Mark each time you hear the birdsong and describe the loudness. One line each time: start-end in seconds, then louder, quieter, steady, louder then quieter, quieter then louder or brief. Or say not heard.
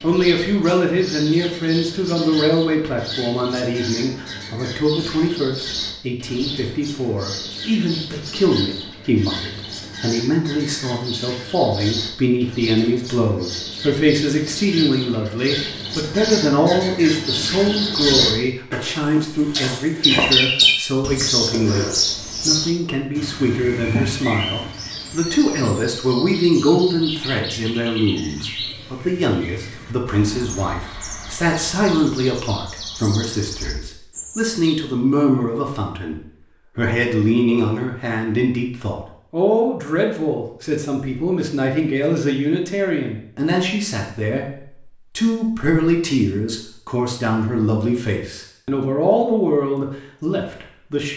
0.0-34.9 louder then quieter.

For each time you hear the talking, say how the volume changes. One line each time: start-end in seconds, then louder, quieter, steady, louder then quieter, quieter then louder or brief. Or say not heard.
0.0-51.1 steady.